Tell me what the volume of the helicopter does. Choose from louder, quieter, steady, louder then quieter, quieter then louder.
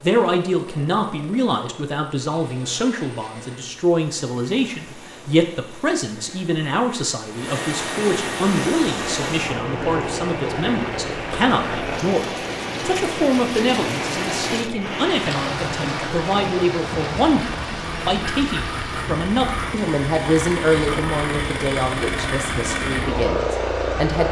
louder.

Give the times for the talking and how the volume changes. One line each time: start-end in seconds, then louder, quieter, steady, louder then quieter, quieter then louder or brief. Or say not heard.
0.0-24.2 steady.